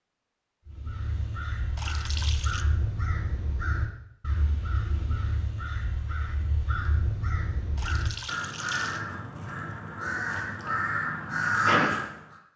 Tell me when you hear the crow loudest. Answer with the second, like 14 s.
12 s.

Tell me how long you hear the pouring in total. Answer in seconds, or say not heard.
2 s.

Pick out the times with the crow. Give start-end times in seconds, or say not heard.
0.7-12.3.